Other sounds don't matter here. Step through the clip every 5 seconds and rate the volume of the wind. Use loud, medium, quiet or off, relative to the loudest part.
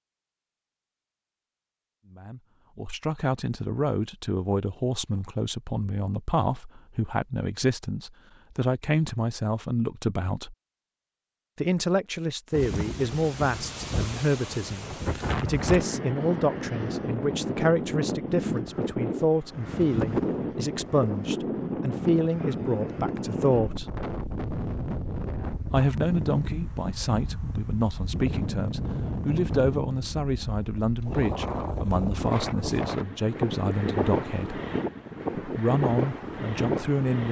off, off, medium, loud, loud, loud, loud, loud.